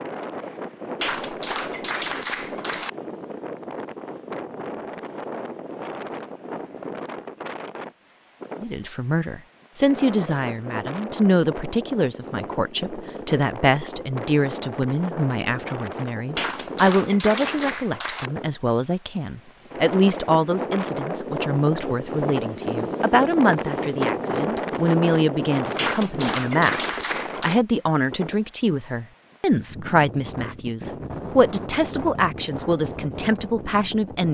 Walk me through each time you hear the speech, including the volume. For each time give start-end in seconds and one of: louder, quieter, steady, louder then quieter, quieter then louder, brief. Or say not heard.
8.6-34.2 steady.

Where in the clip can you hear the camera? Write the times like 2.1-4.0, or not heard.
not heard.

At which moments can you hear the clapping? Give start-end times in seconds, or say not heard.
1.0-2.9, 16.4-18.3, 25.8-27.6.